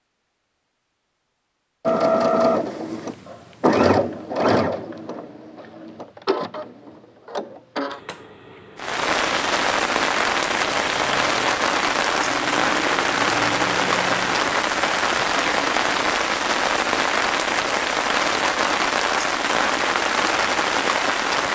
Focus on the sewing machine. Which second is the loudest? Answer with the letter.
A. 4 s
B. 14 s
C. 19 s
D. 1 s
A.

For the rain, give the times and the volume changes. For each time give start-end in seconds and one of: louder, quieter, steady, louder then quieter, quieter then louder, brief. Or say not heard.
8.8-21.5 steady.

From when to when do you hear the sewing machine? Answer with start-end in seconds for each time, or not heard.
1.9-16.0.